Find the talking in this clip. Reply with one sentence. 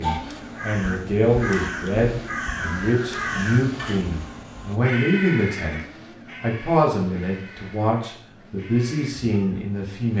The talking can be heard from 0.0 to 5.8 s and from 6.4 to 10.1 s.